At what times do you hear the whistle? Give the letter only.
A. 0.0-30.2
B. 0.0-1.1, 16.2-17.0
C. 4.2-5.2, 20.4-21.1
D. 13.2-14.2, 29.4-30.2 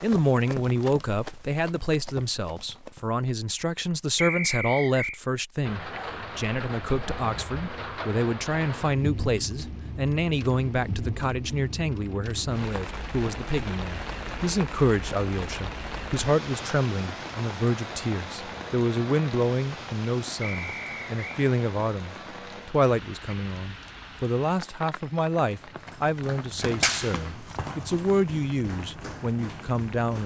C.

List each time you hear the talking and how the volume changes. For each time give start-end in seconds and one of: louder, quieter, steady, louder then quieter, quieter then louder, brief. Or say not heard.
0.0-30.2 steady.